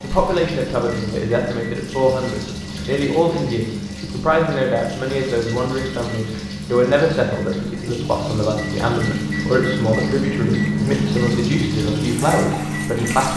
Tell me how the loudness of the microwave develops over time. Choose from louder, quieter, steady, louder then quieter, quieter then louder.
louder.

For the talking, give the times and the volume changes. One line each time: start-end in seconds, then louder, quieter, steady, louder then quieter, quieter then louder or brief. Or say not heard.
0.0-13.3 steady.